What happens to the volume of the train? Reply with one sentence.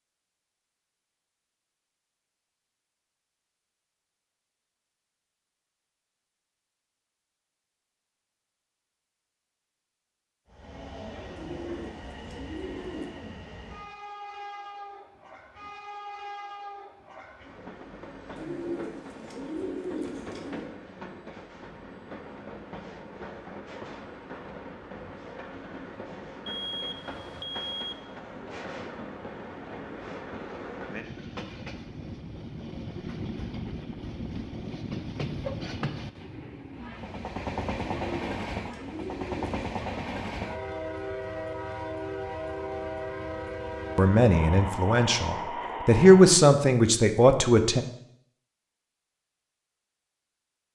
The loudness of the train goes up.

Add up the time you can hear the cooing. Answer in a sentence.
The cooing can be heard for 6 seconds in total.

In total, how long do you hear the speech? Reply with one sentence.
You can hear the speech for 4 seconds altogether.